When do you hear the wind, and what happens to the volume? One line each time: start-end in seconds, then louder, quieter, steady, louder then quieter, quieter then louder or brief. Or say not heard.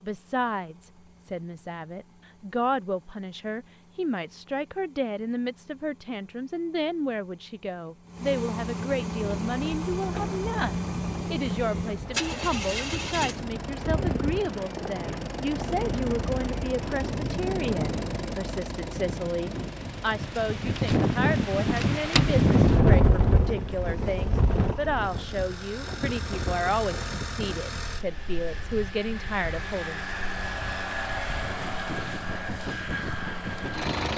9.2-34.1 louder then quieter.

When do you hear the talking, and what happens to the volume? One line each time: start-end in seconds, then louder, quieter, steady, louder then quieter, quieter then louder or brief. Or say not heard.
0.0-30.1 steady.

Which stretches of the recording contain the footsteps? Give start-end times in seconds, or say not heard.
not heard.